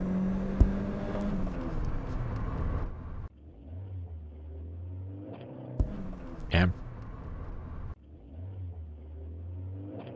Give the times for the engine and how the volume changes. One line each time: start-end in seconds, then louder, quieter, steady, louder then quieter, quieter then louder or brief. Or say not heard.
0.0-10.1 quieter.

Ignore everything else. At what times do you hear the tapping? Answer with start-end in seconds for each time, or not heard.
0.6-1.4, 5.8-6.7.